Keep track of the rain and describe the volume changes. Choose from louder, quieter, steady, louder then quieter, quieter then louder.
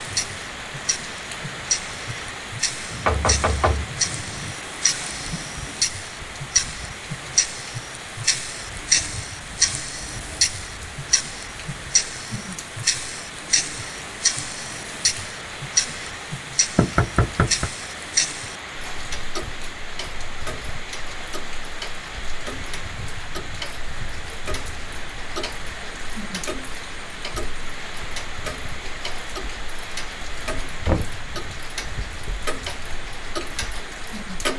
steady.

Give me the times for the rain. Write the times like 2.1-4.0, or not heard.
0.0-34.5.